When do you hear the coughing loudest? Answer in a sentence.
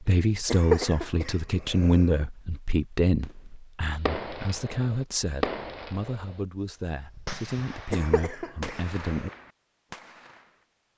The loudest moment of the coughing is at 1 second.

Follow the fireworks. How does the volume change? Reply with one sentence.
The loudness of the fireworks goes down.